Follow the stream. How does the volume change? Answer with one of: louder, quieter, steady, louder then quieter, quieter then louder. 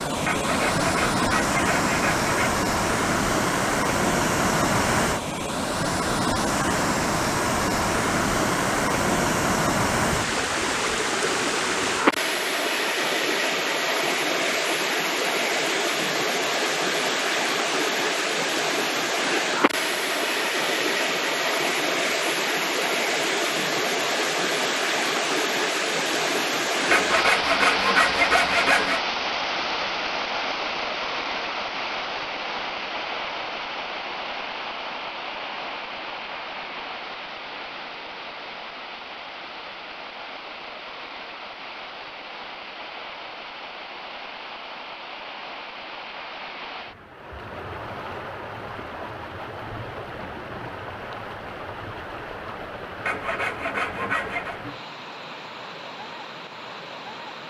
quieter.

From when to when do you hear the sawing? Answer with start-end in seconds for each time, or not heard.
0.2-2.6, 26.9-29.0, 53.0-54.6.